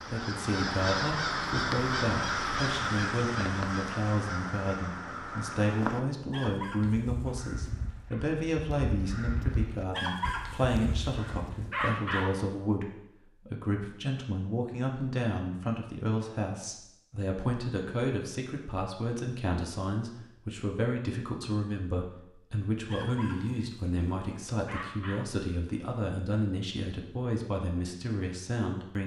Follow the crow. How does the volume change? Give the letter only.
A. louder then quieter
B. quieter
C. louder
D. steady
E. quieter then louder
B.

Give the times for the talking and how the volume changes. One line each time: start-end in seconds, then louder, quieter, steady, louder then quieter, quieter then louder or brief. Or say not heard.
0.1-29.0 steady.